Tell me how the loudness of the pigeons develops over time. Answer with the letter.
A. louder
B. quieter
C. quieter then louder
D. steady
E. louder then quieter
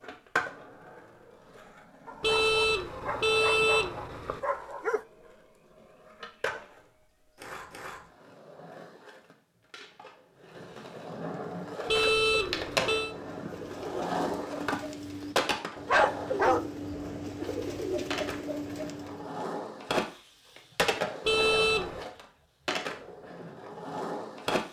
A.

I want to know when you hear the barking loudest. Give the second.
16 s.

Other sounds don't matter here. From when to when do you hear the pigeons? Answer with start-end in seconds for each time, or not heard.
11.4-19.3.